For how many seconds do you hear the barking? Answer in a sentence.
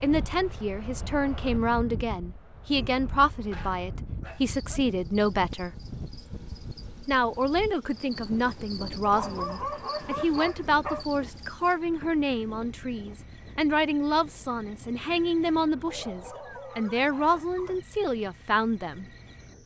You can hear the barking for 6 seconds altogether.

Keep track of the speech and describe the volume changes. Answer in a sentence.
The loudness of the speech stays about the same.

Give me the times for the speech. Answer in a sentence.
You can hear the speech from 0.0 to 5.7 s and from 7.0 to 19.1 s.